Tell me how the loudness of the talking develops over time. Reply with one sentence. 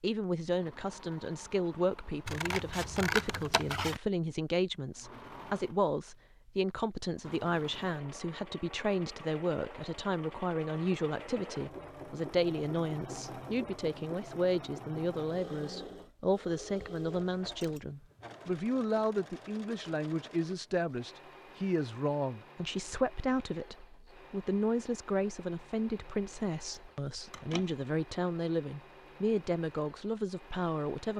The loudness of the talking stays about the same.